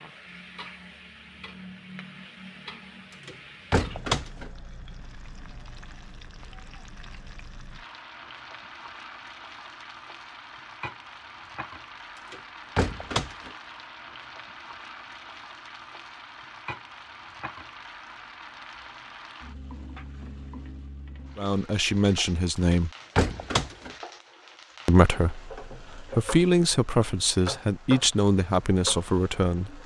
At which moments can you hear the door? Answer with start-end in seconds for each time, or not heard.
3.2-4.5, 12.3-13.5, 22.7-23.9.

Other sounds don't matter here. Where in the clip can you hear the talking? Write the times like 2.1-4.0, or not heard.
21.4-22.9, 24.9-29.8.